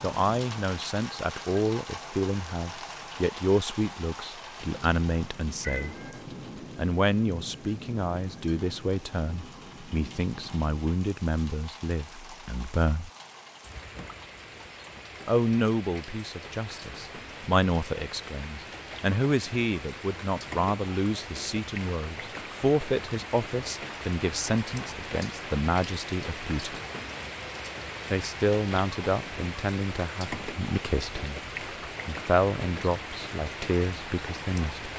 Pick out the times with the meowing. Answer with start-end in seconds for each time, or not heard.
5.6-6.2.